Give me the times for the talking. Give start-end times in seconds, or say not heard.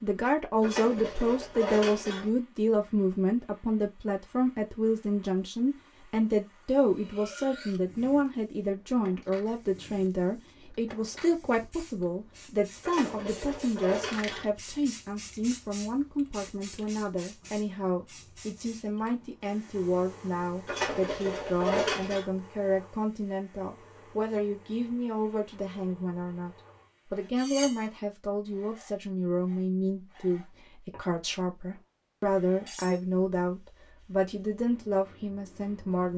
0.0-36.1.